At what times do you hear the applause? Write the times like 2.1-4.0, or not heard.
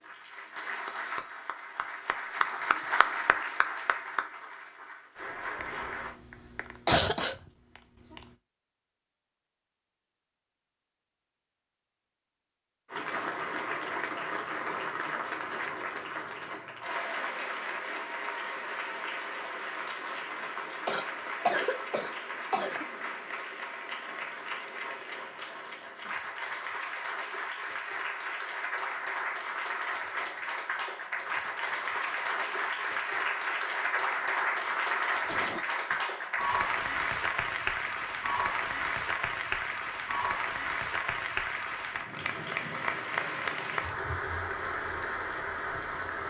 0.0-6.2, 12.9-46.2.